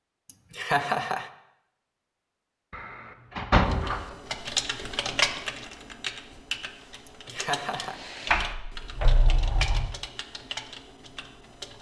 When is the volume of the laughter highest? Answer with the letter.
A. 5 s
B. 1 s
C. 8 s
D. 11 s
B.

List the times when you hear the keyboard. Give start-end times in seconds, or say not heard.
3.6-11.7.